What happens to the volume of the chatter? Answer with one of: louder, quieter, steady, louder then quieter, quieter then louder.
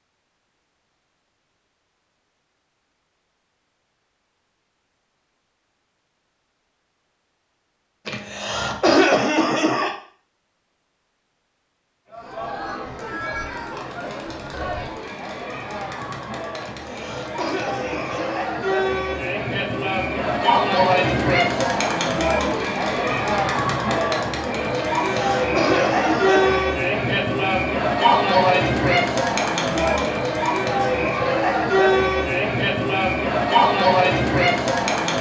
louder.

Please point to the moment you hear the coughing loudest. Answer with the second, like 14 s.
9 s.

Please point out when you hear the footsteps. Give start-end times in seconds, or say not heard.
not heard.